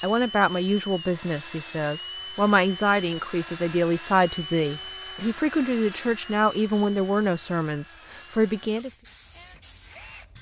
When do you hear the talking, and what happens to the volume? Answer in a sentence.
You can hear the talking from 0.0 to 8.9 s, at a steady volume.